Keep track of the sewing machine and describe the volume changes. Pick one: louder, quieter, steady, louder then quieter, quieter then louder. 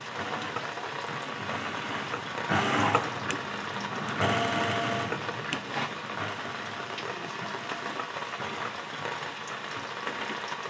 louder then quieter.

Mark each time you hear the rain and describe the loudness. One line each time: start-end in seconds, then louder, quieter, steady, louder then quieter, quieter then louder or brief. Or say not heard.
0.0-10.6 steady.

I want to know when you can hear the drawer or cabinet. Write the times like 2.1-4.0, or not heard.
not heard.